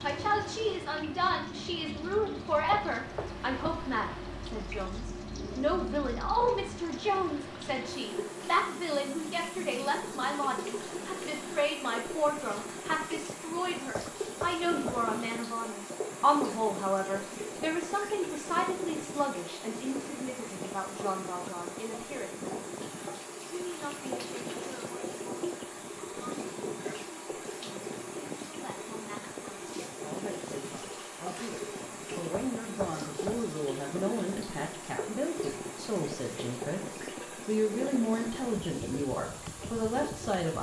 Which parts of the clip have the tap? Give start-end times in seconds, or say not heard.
0.0-40.5.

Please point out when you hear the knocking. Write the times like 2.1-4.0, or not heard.
2.7-3.9, 13.9-15.1, 32.3-33.5.